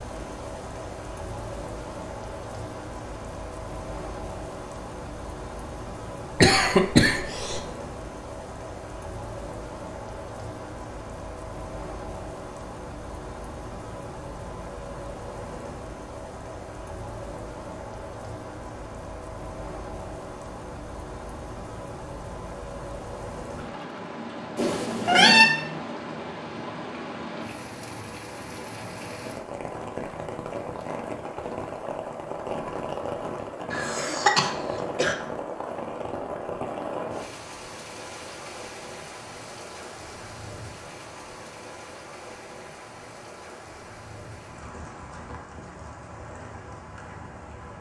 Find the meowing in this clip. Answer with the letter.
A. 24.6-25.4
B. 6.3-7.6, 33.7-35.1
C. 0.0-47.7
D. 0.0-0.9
A.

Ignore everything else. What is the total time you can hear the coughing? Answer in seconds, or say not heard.
3 s.